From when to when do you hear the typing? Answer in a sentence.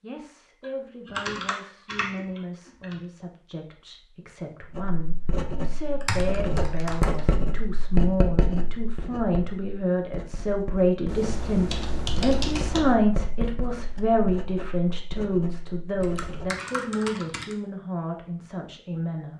You can hear the typing from 0.6 to 3.0 s, from 6.0 to 7.2 s, from 11.1 to 12.8 s and from 16.0 to 17.6 s.